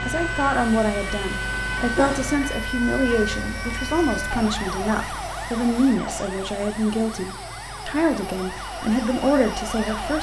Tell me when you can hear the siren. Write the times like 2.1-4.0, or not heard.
0.0-10.1.